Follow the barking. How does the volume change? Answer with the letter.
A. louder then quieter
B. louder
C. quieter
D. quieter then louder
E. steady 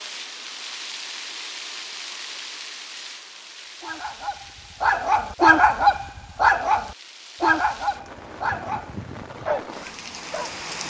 A.